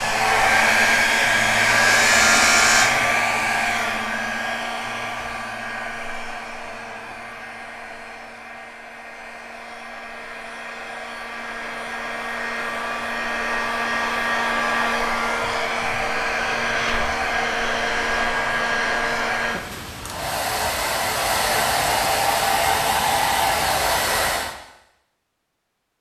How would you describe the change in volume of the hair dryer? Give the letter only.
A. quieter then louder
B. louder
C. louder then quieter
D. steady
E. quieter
A.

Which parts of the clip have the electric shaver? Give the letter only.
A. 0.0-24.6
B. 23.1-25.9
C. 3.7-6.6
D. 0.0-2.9
D.